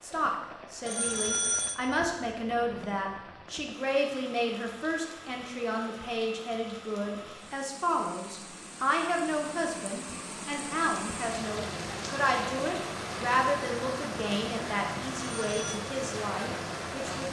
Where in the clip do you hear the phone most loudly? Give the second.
1 s.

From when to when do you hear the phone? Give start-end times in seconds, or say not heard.
0.8-1.8, 15.3-15.8.